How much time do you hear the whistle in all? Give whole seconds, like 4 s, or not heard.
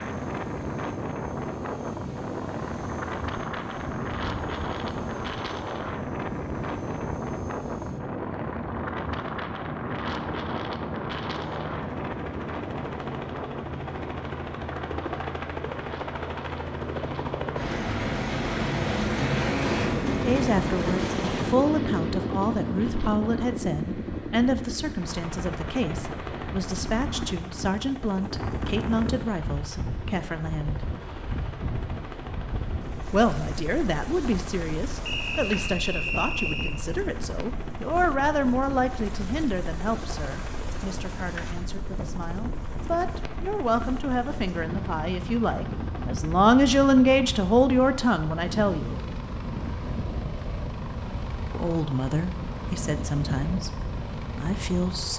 2 s.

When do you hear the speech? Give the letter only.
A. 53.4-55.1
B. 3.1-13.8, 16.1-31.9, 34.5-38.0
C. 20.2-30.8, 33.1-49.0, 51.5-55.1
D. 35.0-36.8
C.